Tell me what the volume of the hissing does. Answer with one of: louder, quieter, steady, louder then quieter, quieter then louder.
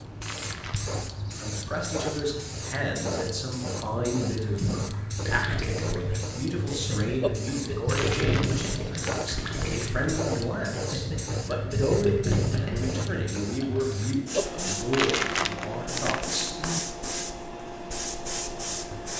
steady.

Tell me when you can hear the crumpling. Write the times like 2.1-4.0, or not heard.
0.2-0.9, 7.9-9.8, 14.9-16.8.